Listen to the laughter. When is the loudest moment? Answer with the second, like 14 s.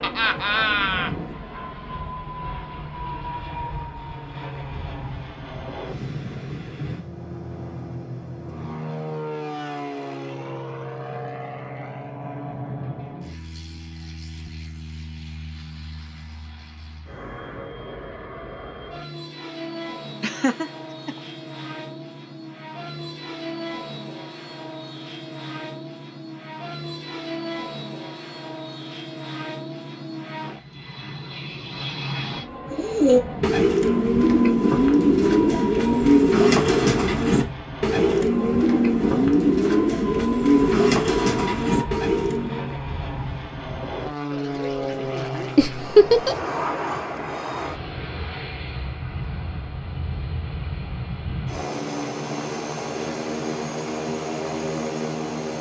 46 s.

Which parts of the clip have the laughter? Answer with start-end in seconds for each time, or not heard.
0.0-1.1, 20.2-21.1, 45.5-46.4.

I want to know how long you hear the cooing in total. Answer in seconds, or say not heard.
10 s.